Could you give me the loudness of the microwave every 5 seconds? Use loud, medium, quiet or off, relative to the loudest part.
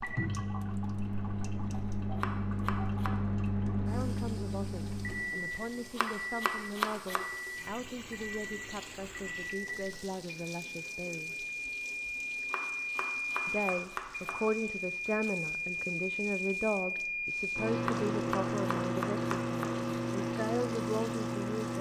loud, medium, loud, loud, loud.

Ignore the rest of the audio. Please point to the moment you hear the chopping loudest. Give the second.
7 s.